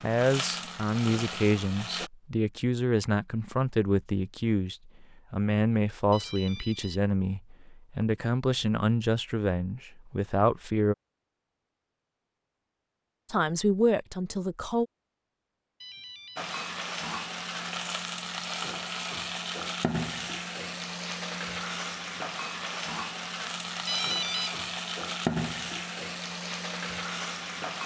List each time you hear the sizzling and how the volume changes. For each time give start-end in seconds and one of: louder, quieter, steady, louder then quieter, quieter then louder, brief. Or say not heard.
0.0-2.1 brief
16.4-27.8 steady.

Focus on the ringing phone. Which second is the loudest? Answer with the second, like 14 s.
24 s.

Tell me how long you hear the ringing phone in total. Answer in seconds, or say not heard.
2 s.